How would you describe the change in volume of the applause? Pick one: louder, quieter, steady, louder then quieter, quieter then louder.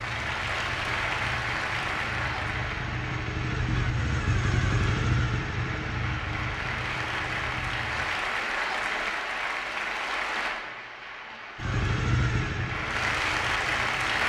quieter then louder.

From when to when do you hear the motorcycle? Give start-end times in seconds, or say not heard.
0.0-8.1, 11.6-14.2.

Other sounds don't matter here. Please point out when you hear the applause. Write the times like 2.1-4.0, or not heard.
0.0-14.2.